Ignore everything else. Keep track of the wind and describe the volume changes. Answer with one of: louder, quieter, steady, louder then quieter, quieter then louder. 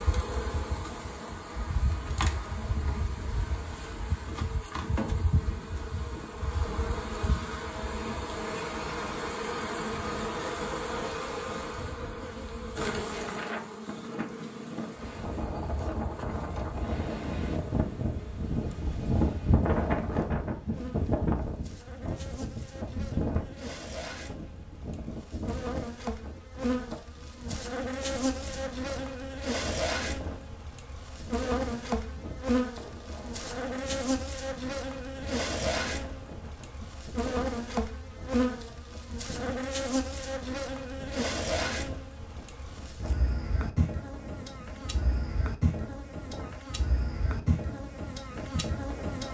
louder then quieter.